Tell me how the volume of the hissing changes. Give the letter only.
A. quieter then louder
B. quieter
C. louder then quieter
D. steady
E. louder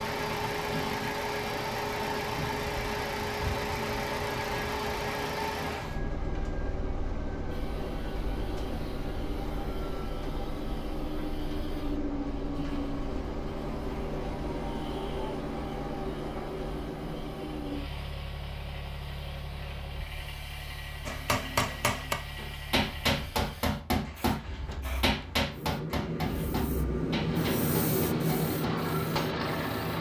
E.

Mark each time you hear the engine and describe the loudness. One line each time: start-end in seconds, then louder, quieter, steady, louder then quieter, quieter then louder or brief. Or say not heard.
0.0-29.9 quieter.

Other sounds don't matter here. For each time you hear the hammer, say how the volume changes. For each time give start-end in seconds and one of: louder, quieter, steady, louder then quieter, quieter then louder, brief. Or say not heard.
21.1-29.5 quieter.